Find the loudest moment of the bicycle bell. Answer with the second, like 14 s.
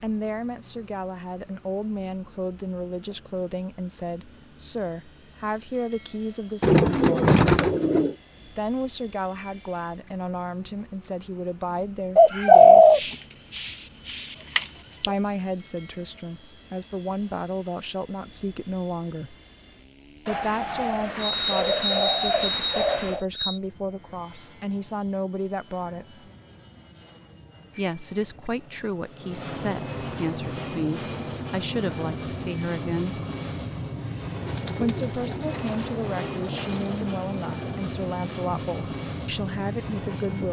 22 s.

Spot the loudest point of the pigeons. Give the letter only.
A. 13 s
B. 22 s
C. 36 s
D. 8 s
A.